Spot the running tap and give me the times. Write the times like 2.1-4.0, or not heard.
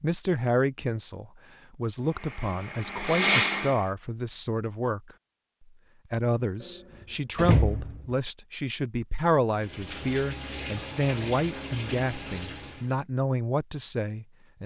9.5-12.9.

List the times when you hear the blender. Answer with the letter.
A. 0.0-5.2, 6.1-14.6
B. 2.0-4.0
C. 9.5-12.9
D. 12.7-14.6
B.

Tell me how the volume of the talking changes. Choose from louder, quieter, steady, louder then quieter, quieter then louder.
steady.